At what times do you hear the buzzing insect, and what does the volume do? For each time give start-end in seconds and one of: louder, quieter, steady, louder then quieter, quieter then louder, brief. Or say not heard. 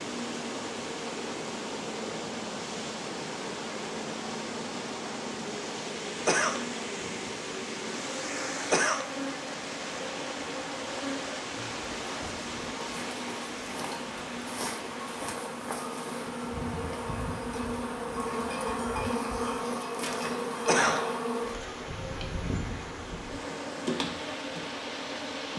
0.0-25.5 louder.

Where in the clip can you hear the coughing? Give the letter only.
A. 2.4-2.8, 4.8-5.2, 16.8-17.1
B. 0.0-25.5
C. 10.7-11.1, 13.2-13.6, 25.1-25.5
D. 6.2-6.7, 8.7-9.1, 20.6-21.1
D.